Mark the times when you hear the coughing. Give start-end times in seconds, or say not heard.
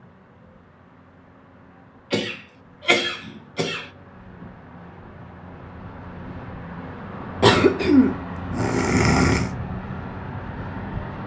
2.1-3.9, 7.4-9.5.